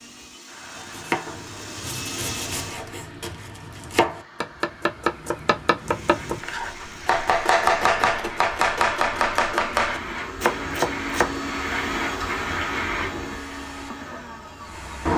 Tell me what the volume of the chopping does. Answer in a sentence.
The loudness of the chopping goes up.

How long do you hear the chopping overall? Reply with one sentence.
You can hear the chopping for 11 seconds altogether.